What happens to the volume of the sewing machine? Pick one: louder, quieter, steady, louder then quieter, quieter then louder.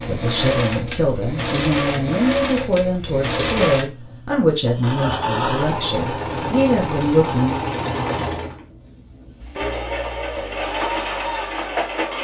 steady.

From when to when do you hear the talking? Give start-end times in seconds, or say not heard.
0.1-7.7.